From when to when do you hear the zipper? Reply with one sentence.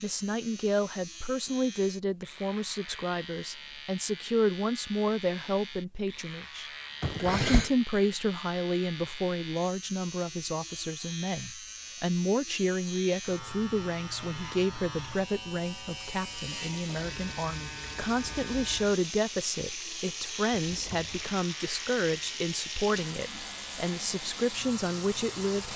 You can't hear the zipper here.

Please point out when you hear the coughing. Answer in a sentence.
You can hear the coughing from 7.0 to 7.7 s and from 20.5 to 21.4 s.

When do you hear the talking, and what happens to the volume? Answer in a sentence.
The talking can be heard from 0.0 to 25.7 s, at a steady volume.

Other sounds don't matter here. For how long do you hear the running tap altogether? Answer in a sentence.
The running tap can be heard for 9 seconds in total.